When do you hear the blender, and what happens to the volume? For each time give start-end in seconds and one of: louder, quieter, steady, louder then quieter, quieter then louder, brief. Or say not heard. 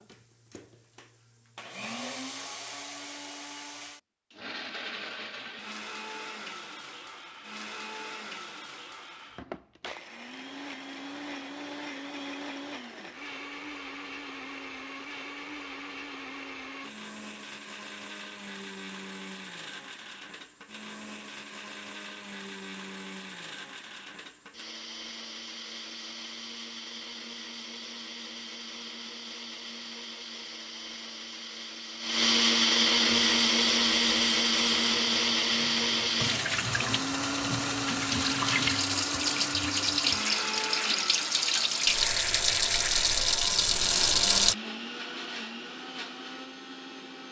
0.0-47.2 louder then quieter.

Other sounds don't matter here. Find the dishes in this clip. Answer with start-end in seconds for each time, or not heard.
not heard.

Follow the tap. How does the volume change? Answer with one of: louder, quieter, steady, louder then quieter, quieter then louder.
louder.